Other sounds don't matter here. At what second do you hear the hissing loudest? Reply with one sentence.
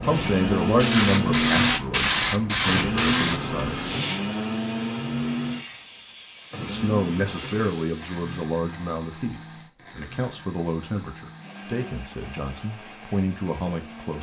The loudest moment of the hissing is at 2 seconds.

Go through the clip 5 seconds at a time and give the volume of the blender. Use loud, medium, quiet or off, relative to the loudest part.
loud, medium, quiet.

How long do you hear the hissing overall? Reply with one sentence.
You can hear the hissing for 8 seconds altogether.